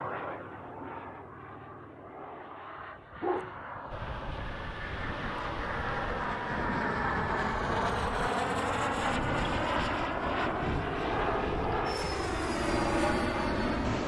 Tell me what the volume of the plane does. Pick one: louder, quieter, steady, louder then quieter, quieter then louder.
louder.